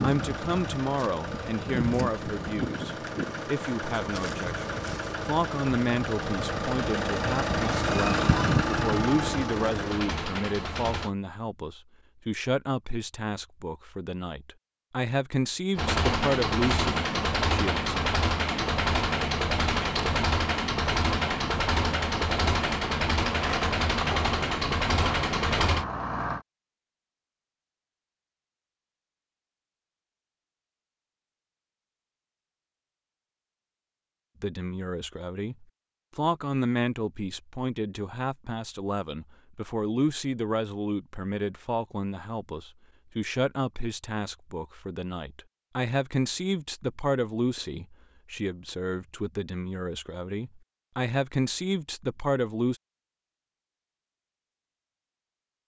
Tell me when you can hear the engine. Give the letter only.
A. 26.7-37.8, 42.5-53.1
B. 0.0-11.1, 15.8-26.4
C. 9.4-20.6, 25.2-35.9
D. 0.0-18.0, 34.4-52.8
B.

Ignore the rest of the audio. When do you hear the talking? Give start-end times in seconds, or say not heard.
0.0-18.0, 34.4-52.8.